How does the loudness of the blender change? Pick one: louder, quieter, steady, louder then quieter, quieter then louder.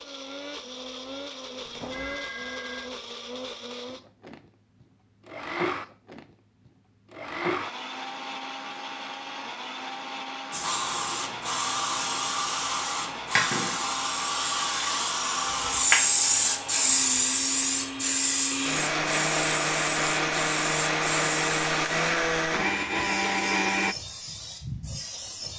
louder.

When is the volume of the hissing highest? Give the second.
16 s.